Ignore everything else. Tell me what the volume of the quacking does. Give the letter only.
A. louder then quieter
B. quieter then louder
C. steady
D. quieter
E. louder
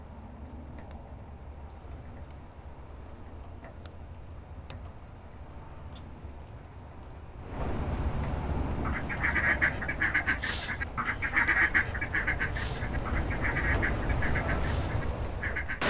D.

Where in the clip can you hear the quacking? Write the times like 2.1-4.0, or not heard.
8.8-15.8.